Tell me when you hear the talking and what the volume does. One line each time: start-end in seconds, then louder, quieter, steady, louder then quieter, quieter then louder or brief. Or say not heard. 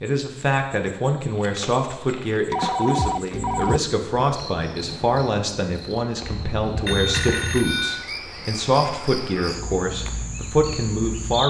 0.0-11.4 steady.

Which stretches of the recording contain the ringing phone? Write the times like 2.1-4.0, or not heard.
2.5-3.8, 6.8-8.1.